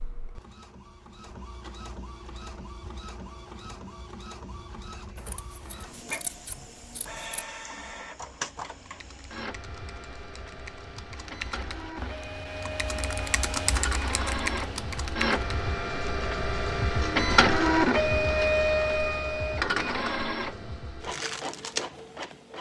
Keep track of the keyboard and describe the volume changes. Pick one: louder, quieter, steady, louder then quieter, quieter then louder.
louder.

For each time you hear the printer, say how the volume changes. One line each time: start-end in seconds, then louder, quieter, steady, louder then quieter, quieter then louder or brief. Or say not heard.
0.0-22.5 louder.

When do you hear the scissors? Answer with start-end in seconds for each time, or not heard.
5.2-7.5.